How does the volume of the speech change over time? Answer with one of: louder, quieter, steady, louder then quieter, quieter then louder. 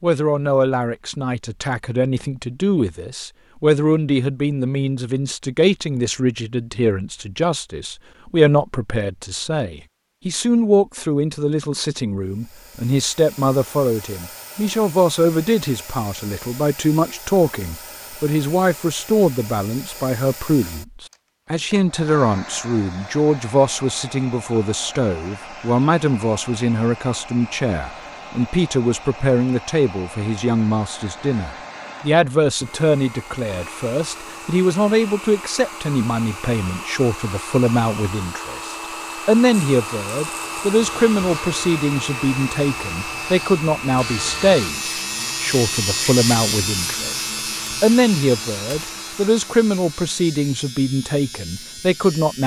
steady.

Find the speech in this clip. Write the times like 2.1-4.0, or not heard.
0.0-52.4.